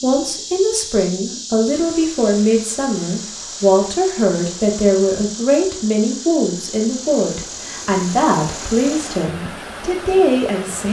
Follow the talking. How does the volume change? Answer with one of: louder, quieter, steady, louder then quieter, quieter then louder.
steady.